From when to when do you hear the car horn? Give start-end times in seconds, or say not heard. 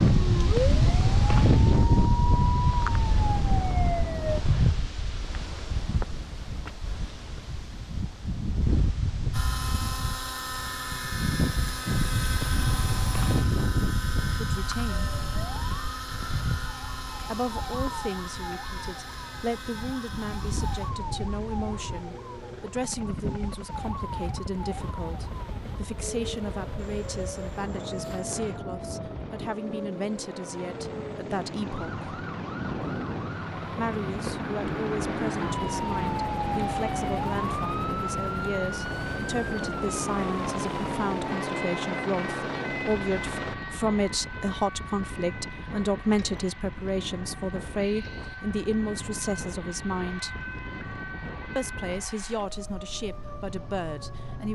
not heard.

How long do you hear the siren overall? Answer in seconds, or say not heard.
44 s.